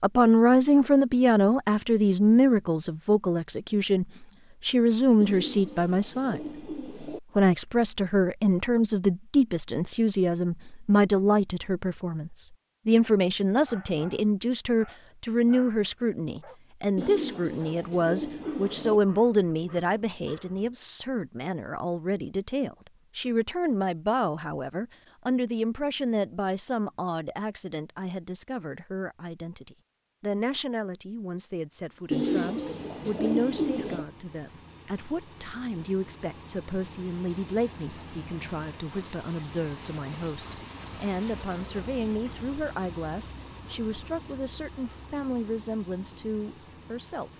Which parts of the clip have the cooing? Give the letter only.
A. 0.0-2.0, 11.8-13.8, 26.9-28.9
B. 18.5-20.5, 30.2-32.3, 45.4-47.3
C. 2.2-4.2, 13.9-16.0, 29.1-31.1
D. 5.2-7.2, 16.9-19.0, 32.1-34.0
D.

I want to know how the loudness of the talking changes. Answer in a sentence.
The loudness of the talking goes down.